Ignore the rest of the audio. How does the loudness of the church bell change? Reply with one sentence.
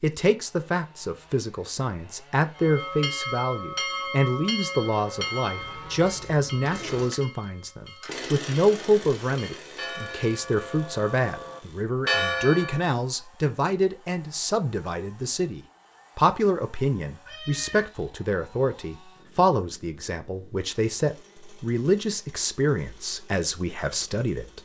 The volume of the church bell goes down, then up.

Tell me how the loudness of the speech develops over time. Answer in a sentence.
The volume of the speech stays about the same.